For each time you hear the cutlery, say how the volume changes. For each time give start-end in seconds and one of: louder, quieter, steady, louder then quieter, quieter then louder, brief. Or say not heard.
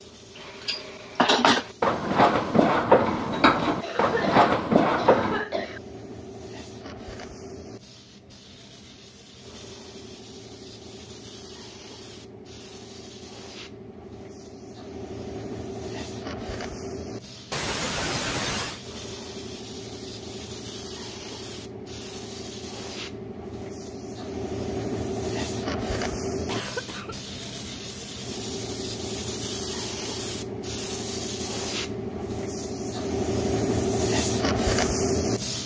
0.4-5.5 steady.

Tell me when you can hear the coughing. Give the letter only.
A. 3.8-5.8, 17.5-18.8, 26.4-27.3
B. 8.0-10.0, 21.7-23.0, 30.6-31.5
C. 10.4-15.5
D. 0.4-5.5
A.